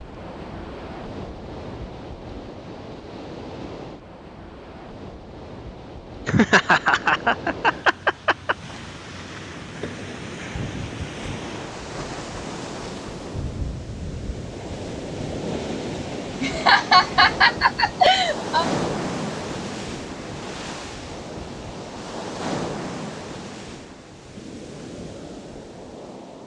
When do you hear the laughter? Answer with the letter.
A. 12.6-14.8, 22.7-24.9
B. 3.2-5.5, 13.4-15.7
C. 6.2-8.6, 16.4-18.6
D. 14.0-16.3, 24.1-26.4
C.